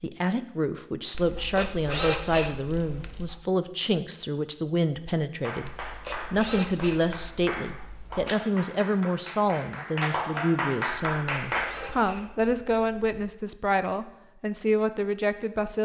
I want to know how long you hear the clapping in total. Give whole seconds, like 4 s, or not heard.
6 s.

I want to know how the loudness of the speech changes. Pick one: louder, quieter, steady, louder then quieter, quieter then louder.
steady.